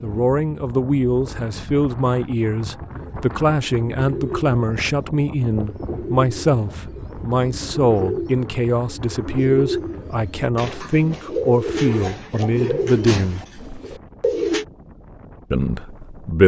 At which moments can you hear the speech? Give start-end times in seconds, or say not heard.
0.0-13.4, 15.5-16.4.